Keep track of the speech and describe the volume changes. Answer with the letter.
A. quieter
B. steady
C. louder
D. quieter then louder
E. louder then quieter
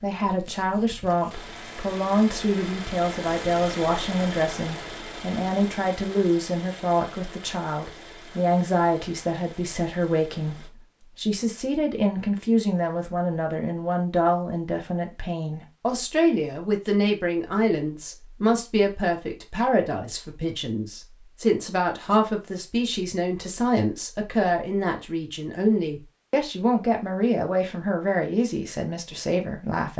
B.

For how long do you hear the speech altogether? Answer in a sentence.
The speech can be heard for 30 seconds in total.